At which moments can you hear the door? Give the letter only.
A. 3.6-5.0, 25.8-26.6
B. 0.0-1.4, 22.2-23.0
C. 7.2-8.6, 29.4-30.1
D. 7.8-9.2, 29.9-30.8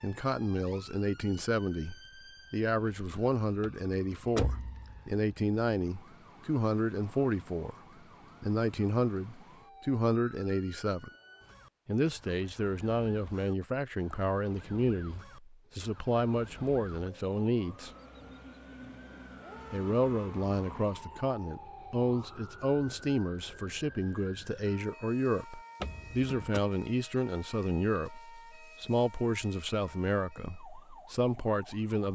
A.